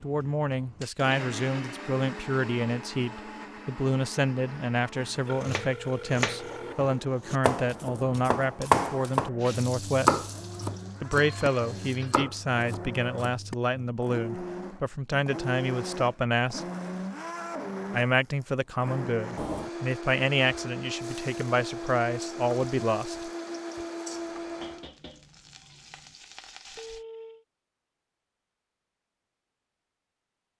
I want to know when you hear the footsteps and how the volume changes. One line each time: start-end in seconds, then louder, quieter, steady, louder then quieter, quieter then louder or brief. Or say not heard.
not heard.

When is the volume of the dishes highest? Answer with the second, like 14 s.
25 s.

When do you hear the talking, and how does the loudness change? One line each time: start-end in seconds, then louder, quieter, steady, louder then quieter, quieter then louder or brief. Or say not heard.
0.0-10.2 steady
11.0-16.6 steady
17.9-23.3 steady.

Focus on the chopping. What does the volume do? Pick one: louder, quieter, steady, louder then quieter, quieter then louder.
louder then quieter.